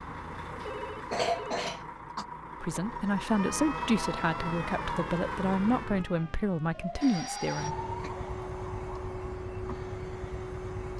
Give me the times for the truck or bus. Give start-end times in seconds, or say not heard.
0.0-6.0, 7.5-10.9.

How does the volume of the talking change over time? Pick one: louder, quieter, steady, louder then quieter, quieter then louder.
steady.